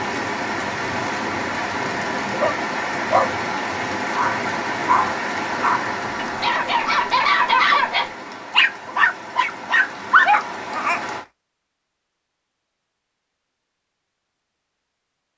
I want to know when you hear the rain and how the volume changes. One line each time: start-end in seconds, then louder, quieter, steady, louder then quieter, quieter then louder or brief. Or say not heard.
0.0-11.2 quieter.